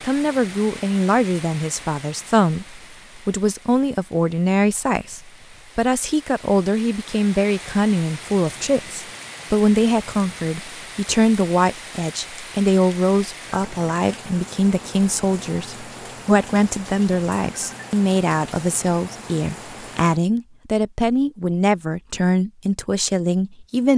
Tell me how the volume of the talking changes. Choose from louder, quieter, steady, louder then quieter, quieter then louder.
steady.